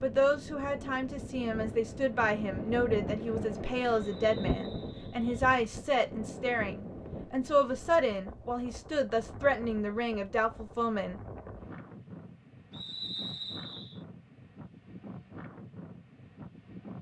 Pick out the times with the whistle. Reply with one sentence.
The whistle can be heard from 4.0 to 5.2 s and from 12.7 to 14.0 s.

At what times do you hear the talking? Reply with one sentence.
You can hear the talking from 0.0 to 11.2 s.